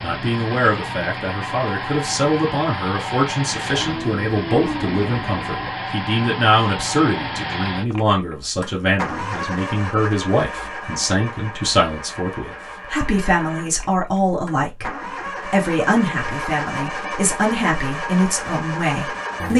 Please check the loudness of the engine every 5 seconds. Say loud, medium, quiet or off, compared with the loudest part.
loud, loud, medium, loud.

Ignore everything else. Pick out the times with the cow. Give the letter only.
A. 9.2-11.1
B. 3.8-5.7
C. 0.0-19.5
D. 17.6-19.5
B.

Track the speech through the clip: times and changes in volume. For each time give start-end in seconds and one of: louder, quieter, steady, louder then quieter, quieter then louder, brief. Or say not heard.
0.0-19.5 steady.